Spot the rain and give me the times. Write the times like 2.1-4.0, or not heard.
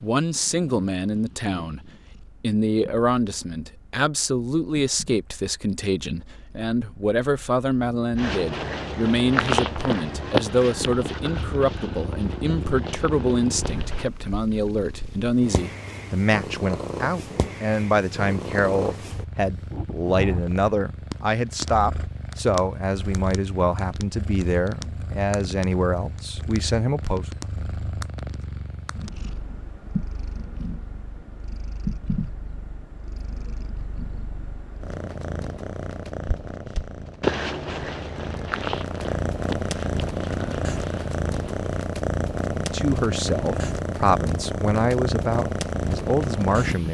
not heard.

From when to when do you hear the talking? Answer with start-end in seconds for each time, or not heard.
0.0-27.3, 42.5-46.8.